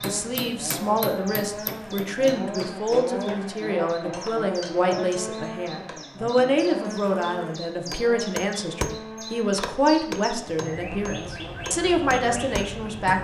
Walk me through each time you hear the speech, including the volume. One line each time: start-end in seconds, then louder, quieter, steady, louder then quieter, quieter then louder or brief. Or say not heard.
0.0-13.2 steady.